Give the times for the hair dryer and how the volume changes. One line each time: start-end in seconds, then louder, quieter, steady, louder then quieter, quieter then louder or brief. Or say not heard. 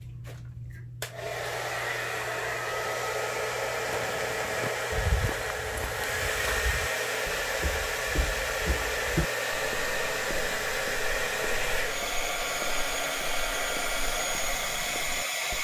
0.0-15.5 steady.